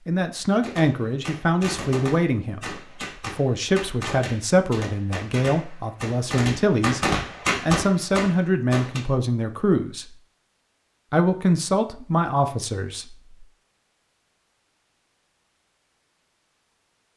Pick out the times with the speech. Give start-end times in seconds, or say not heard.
0.1-10.2, 11.1-13.3.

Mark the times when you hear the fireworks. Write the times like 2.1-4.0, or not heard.
0.6-9.0.